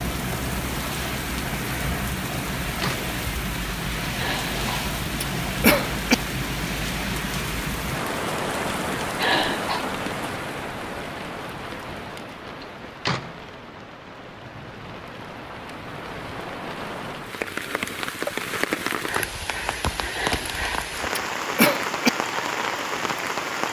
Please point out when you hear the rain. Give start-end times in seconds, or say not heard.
0.0-23.6.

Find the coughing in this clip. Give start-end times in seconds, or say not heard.
4.2-6.2, 9.2-9.8, 20.1-22.1.